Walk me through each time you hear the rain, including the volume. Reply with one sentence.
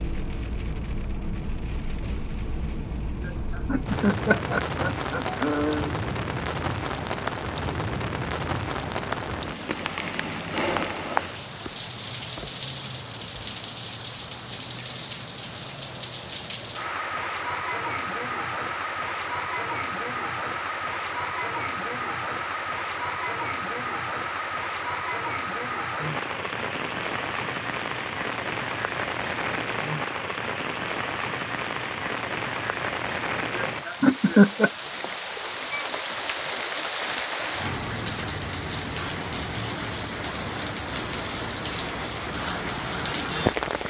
You can hear the rain from 0.0 to 43.8 s, at a steady volume.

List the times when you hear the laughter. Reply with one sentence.
The laughter can be heard from 3.2 to 5.9 s and from 33.5 to 34.7 s.